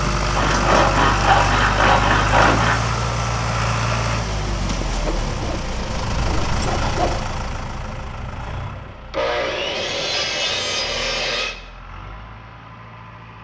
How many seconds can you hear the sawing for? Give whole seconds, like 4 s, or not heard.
7 s.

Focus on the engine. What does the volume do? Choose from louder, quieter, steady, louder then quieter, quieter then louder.
quieter.